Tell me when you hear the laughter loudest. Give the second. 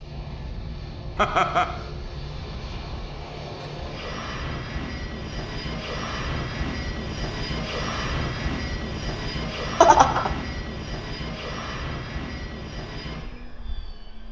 10 s.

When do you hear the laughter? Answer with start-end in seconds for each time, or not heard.
1.1-1.8, 9.8-10.3.